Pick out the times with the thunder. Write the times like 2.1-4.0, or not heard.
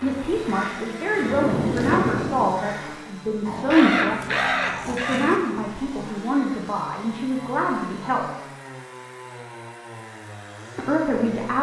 1.1-2.5.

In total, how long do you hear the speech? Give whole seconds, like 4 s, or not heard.
9 s.